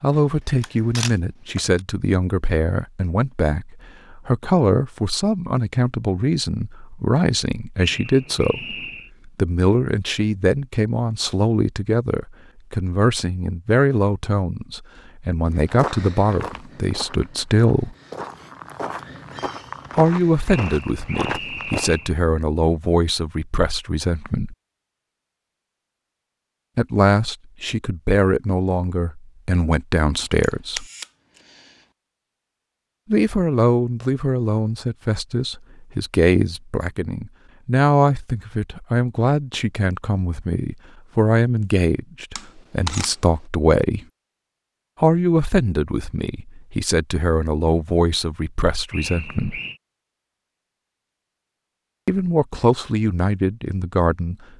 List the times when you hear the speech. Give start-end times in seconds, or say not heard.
0.0-17.9, 19.9-24.6, 26.8-30.9, 33.1-44.0, 45.0-49.6, 52.0-54.4.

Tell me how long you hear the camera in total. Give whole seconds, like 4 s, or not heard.
4 s.